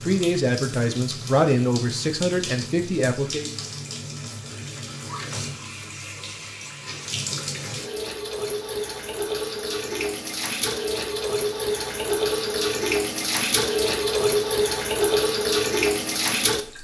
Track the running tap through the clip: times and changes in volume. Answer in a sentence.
You can hear the running tap from 0.0 to 16.7 s, getting louder.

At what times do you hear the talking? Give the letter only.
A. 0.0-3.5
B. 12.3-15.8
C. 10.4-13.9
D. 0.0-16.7
A.